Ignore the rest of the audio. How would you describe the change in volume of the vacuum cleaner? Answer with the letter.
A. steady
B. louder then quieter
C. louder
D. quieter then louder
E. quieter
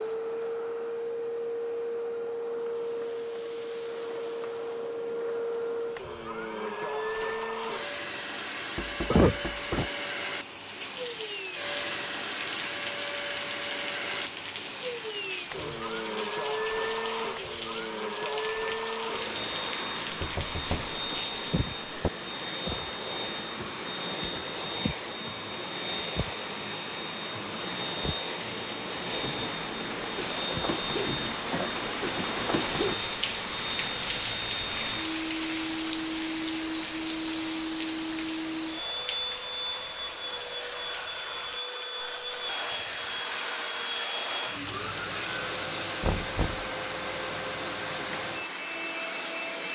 A.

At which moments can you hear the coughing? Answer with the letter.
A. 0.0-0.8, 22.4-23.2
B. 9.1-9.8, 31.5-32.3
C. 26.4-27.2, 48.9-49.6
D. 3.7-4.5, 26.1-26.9
B.